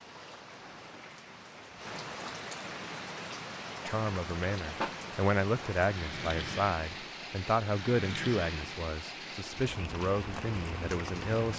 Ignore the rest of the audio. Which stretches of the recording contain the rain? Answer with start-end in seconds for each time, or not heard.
0.0-11.5.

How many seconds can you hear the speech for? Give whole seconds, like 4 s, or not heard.
8 s.